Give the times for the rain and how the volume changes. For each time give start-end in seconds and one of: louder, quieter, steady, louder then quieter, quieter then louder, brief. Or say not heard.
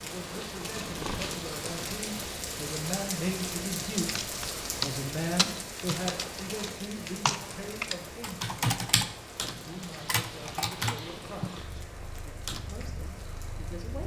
0.0-14.0 quieter.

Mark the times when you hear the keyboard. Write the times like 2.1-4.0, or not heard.
4.2-12.7.